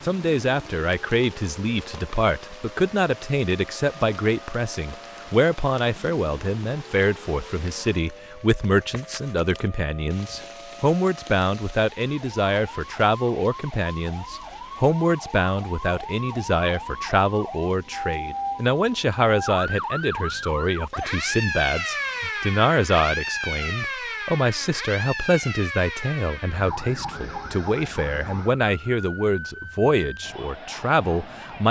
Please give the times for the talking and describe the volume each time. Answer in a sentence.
You can hear the talking from 0.0 to 31.6 s, at a steady volume.